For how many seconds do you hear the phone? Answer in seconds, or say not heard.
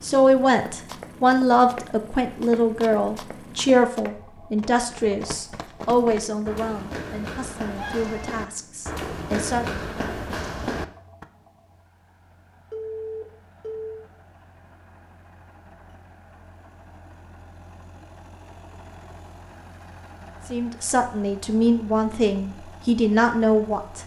2 s.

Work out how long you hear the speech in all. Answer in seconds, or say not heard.
13 s.